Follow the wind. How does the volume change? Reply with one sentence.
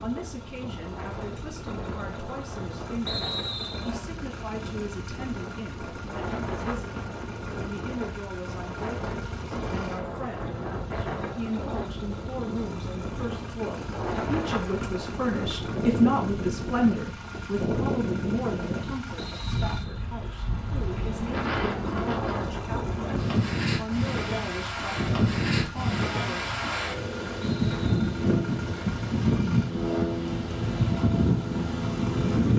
The loudness of the wind goes up.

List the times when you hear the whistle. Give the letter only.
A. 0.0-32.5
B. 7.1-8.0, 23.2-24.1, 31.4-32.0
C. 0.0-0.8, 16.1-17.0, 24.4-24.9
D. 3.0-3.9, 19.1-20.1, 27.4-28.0
D.